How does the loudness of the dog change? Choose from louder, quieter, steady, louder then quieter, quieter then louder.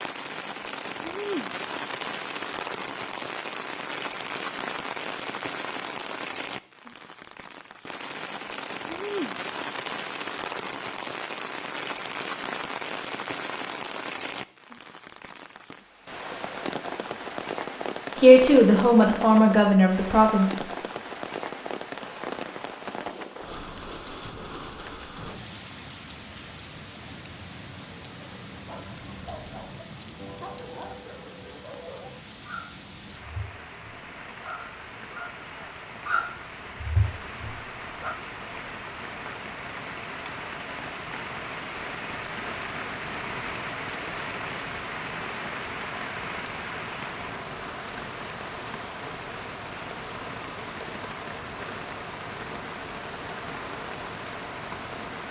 louder.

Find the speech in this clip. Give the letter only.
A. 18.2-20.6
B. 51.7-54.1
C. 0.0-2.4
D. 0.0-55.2
A.